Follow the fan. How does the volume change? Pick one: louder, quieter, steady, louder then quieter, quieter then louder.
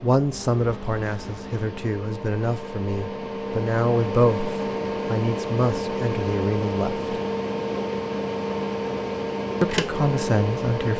louder.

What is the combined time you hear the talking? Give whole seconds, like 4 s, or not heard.
8 s.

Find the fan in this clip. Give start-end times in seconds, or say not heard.
0.0-10.9.